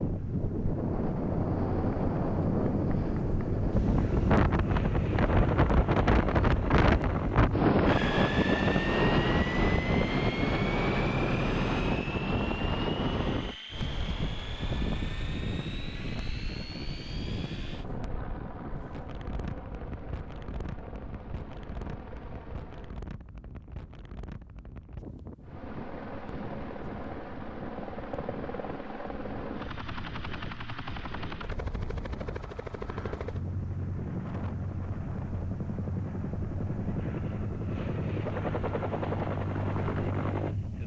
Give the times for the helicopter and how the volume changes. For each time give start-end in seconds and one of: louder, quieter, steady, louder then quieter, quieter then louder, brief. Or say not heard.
0.0-23.1 quieter
25.4-40.8 louder.